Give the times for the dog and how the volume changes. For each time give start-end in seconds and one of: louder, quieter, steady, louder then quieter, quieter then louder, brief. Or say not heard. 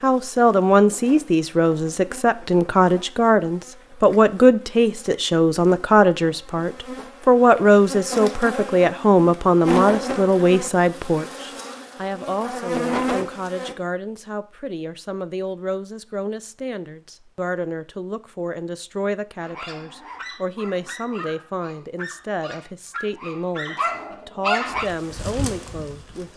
19.4-24.9 louder.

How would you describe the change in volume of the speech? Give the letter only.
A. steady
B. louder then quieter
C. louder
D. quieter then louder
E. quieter
E.